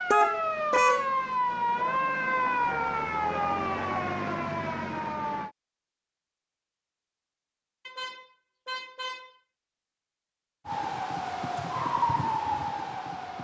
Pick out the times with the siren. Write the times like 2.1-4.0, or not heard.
0.0-5.5, 10.7-13.3.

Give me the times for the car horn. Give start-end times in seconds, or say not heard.
0.1-1.1, 7.8-9.4.